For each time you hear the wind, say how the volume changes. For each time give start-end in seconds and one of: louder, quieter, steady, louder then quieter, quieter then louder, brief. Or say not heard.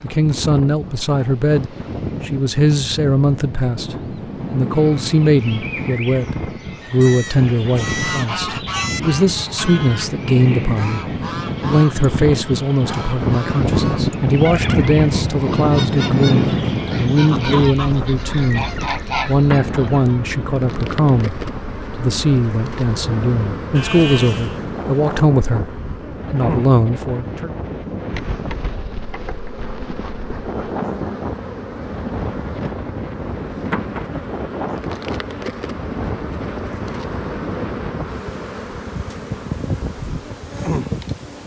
0.0-41.4 louder then quieter.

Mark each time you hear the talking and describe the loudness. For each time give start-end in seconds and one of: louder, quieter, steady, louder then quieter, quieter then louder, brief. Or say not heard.
0.0-18.6 steady
19.2-27.5 steady.